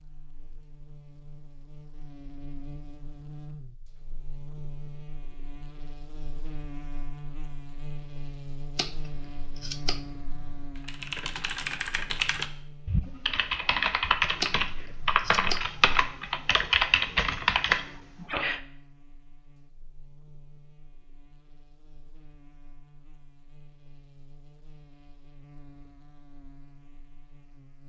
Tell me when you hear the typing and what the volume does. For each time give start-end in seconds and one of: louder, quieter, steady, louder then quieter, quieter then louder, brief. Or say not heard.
10.8-18.6 louder.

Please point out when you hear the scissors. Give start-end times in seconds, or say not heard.
8.8-10.7, 14.4-15.9.